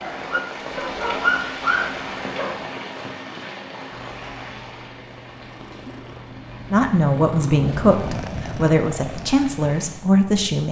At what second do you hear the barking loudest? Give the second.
1 s.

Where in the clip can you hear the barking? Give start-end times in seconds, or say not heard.
0.0-2.7.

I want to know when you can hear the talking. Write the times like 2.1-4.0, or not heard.
6.7-10.6.